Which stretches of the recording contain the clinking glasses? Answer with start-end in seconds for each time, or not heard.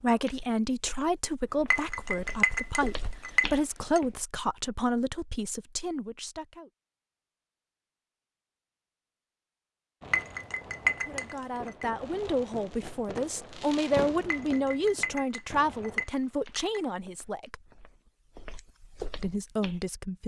1.7-4.0, 10.1-11.8, 14.3-16.9.